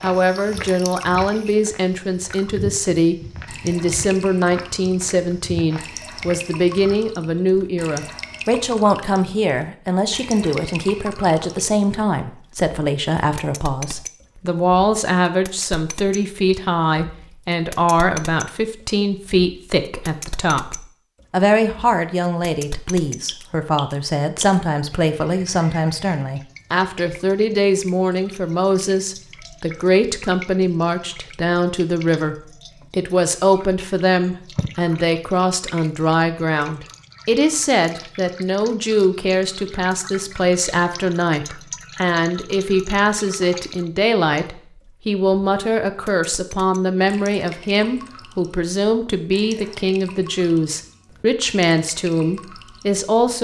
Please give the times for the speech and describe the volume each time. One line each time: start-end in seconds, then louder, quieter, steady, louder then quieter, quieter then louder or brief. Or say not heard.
0.0-53.3 steady.